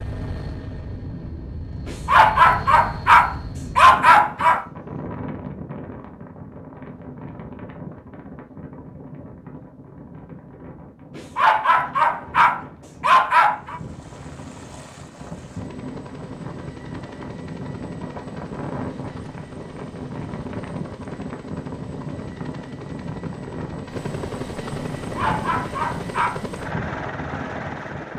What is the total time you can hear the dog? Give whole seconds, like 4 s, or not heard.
7 s.